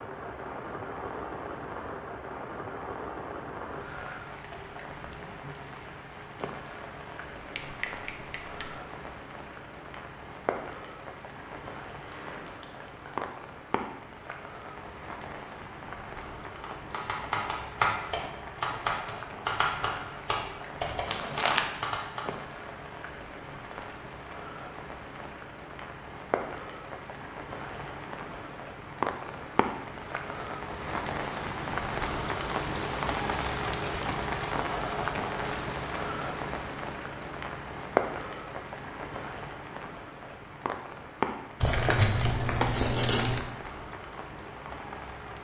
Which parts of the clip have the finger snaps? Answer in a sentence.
You can hear the finger snaps from 7.5 to 8.8 s.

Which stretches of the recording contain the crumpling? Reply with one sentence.
You can hear the crumpling from 12.1 to 13.2 s, from 21.1 to 21.6 s and from 41.6 to 43.4 s.